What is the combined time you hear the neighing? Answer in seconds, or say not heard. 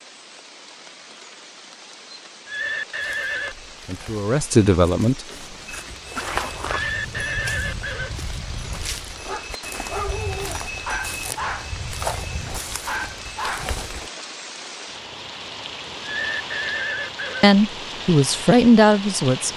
4 s.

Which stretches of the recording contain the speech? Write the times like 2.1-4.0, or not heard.
3.8-5.2, 17.4-19.5.